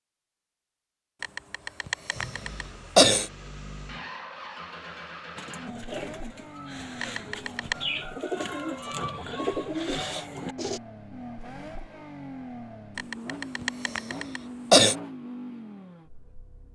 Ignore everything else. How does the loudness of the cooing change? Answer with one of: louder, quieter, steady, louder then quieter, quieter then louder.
louder.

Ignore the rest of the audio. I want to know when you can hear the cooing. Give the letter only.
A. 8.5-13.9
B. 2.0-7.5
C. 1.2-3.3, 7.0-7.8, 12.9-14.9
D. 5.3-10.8
D.